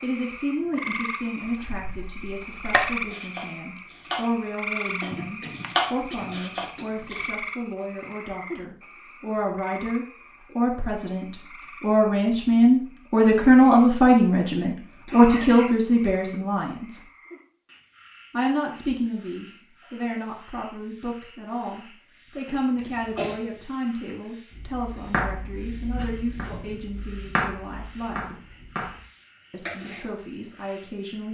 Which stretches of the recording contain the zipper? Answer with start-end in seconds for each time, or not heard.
not heard.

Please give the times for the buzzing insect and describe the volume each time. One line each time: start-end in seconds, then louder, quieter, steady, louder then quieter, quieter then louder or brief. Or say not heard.
not heard.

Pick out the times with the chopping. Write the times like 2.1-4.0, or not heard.
1.4-7.3, 24.5-29.0, 29.6-30.1.